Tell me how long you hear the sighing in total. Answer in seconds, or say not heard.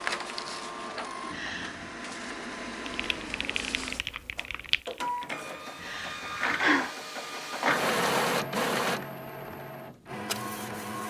2 s.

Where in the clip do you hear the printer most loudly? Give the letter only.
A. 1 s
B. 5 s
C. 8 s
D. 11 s
C.